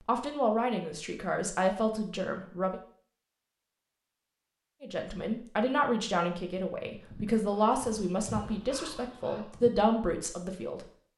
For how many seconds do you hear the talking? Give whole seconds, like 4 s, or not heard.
9 s.